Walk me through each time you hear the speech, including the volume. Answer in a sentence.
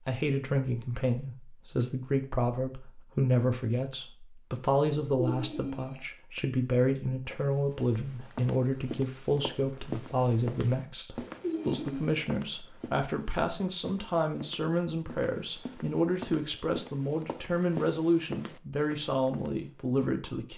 You can hear the speech from 0.1 to 20.5 s, at a steady volume.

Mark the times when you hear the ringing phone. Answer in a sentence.
You can hear the ringing phone from 5.2 to 6.0 s and from 11.4 to 12.3 s.